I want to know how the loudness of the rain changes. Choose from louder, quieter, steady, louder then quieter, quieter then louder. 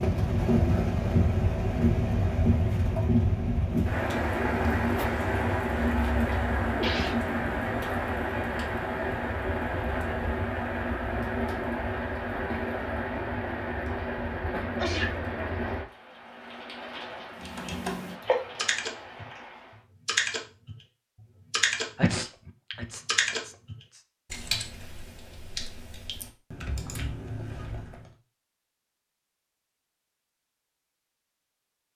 quieter.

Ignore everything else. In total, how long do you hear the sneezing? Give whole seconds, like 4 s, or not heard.
3 s.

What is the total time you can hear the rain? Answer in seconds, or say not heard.
20 s.